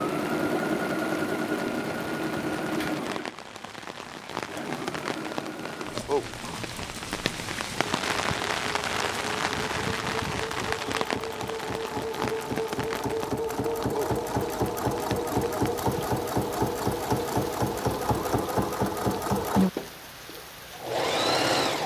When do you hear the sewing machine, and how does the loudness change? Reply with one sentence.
The sewing machine can be heard from 0.0 to 21.8 s, getting quieter then louder.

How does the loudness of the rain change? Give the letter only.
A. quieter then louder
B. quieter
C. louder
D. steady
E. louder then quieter
E.